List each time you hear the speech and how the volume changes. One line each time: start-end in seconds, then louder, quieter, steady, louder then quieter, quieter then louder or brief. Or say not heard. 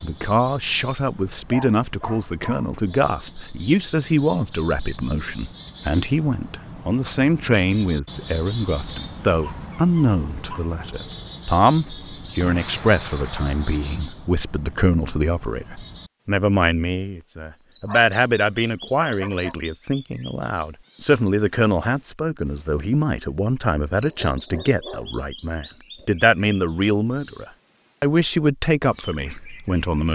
0.0-30.1 steady.